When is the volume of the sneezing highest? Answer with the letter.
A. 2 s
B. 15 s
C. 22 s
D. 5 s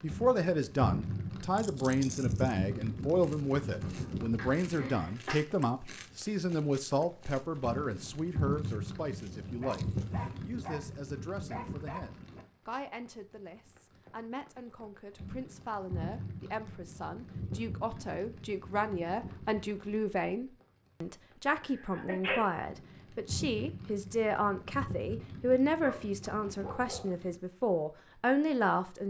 C.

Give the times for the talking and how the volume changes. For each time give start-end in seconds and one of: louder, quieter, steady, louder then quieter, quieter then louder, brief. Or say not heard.
0.0-29.0 quieter then louder.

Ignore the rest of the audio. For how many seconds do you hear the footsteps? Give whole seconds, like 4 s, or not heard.
not heard.